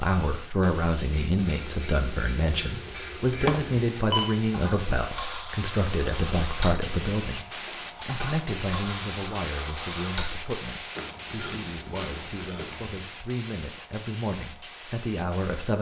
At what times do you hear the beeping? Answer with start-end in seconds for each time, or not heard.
3.5-4.3.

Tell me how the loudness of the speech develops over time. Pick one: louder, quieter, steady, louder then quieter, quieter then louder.
quieter.